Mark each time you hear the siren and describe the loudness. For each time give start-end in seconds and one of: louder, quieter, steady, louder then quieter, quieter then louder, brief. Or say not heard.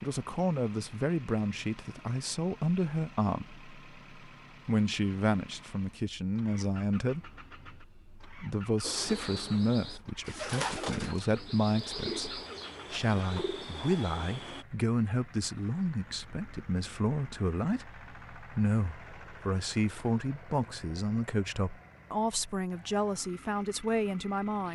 not heard.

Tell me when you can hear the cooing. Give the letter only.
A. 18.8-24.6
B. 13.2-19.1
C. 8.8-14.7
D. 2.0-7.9
C.